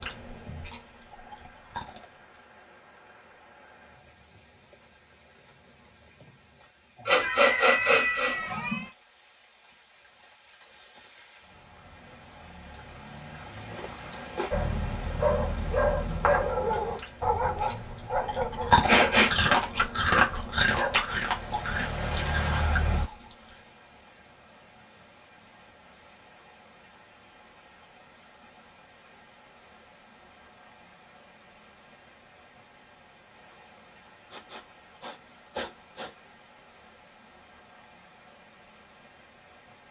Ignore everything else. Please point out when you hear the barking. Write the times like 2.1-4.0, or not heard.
14.5-23.1.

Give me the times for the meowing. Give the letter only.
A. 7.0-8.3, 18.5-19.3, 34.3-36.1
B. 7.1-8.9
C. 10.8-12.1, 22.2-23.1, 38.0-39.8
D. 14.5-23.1
B.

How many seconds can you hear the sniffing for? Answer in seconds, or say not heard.
4 s.